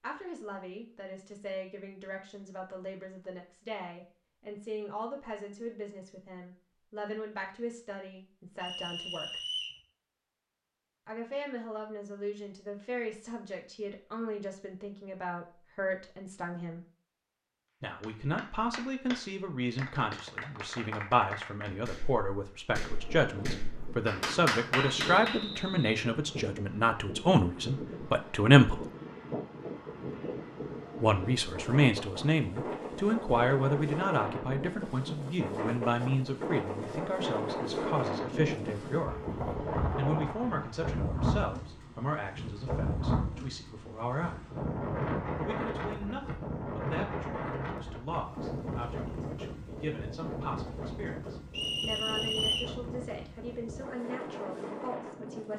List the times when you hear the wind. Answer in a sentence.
You can hear the wind from 22.6 to 55.5 s.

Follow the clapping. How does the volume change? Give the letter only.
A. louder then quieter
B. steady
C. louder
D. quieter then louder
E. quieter
C.